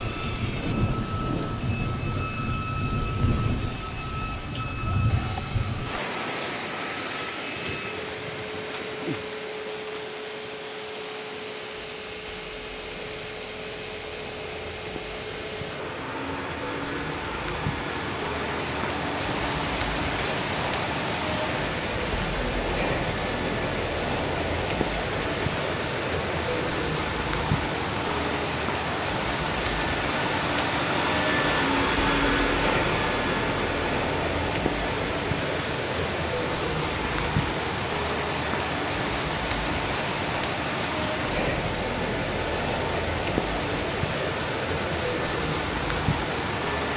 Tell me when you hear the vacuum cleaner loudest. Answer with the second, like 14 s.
32 s.